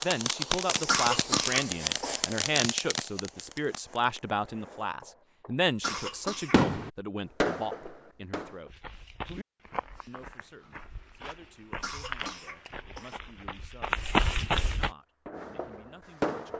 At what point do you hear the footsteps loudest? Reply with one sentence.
The volume of the footsteps peaks at 14 seconds.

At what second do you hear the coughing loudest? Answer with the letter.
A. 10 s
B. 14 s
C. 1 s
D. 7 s
C.